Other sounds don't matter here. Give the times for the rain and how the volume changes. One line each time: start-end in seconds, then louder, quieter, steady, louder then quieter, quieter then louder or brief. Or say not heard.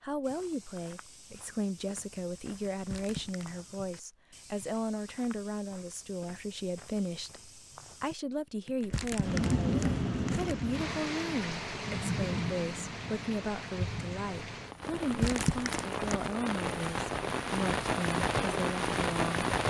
9.2-19.6 quieter then louder.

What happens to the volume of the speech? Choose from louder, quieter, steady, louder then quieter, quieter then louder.
steady.